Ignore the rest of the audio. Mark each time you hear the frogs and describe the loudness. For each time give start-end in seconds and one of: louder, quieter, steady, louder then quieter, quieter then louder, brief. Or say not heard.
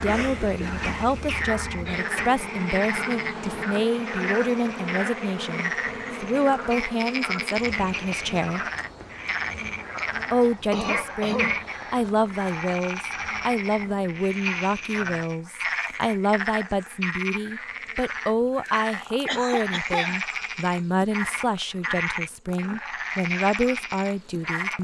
0.0-24.7 steady.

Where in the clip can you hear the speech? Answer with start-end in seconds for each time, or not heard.
0.0-8.7, 10.3-24.7.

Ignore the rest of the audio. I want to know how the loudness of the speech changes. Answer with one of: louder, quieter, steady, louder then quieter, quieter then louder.
steady.